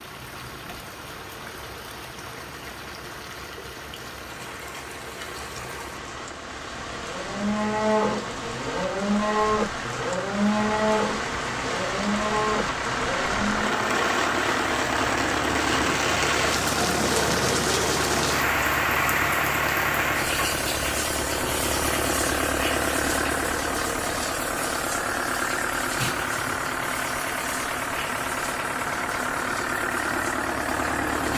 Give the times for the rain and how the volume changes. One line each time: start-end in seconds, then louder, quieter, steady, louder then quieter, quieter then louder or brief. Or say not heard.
0.0-31.3 louder then quieter.